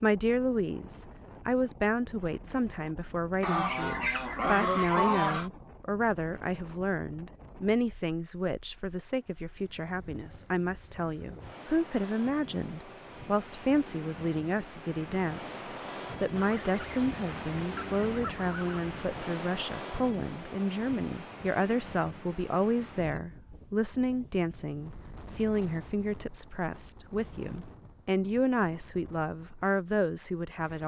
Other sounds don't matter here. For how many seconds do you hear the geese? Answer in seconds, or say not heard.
5 s.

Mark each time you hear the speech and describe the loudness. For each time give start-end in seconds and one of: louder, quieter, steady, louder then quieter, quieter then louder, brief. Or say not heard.
0.0-30.8 steady.